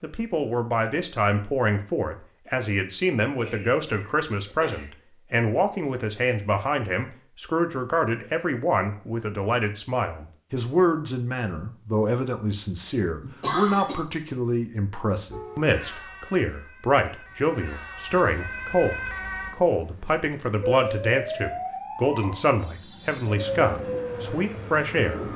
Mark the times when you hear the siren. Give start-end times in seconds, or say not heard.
15.3-25.3.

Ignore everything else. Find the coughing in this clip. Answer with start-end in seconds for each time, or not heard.
3.4-4.8, 13.2-14.1.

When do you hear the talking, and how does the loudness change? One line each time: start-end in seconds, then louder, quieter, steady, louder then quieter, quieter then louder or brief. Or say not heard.
0.0-25.2 steady.